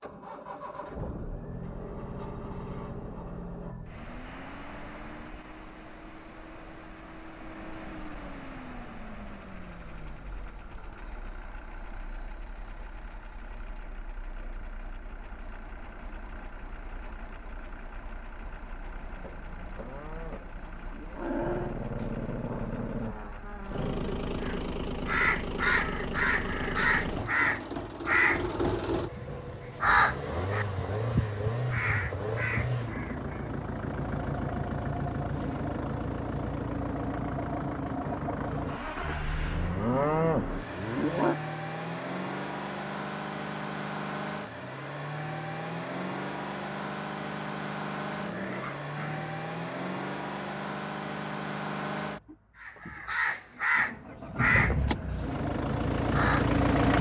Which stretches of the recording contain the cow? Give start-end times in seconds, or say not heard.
19.0-21.8, 39.0-41.4.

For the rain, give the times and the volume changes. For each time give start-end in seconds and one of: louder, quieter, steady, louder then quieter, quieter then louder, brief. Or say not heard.
not heard.